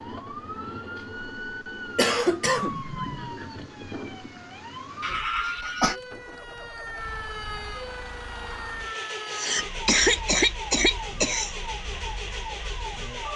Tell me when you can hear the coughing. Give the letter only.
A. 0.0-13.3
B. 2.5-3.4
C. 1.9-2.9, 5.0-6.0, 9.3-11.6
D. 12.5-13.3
C.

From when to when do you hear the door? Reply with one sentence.
The door can be heard from 2.5 to 3.4 s.